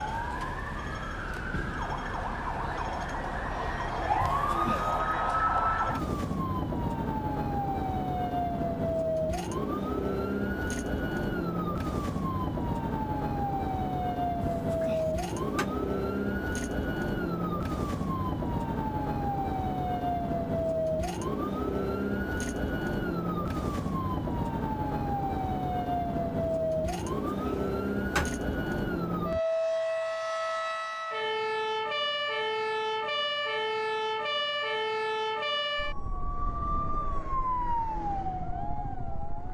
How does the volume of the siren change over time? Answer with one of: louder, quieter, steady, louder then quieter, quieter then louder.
steady.